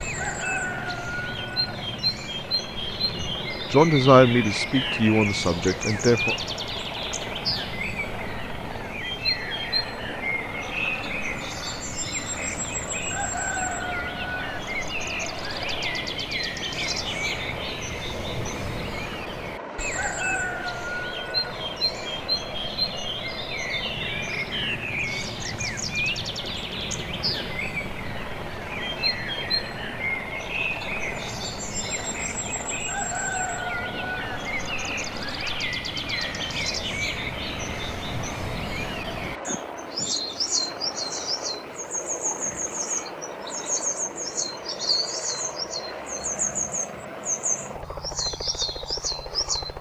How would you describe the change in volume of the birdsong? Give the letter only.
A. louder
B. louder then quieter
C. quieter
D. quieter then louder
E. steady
E.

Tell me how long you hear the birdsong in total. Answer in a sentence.
The birdsong can be heard for 50 seconds in total.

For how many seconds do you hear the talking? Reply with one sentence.
You can hear the talking for 3 seconds altogether.